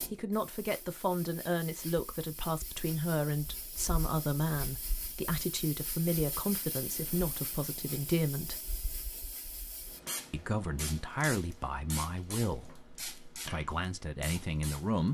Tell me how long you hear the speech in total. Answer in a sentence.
The speech can be heard for 13 seconds in total.